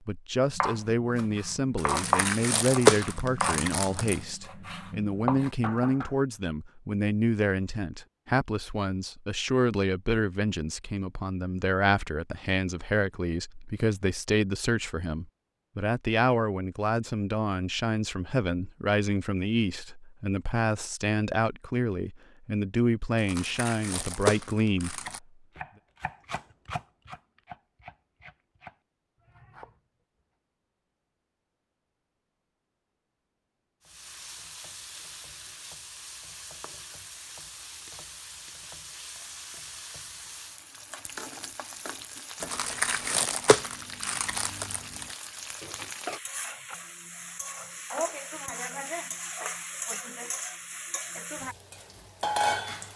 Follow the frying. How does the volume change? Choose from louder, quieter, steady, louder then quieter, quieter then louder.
louder.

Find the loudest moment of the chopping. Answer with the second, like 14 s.
2 s.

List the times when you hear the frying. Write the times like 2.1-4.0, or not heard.
33.8-52.9.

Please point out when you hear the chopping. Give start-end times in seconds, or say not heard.
0.6-6.1, 24.9-29.8.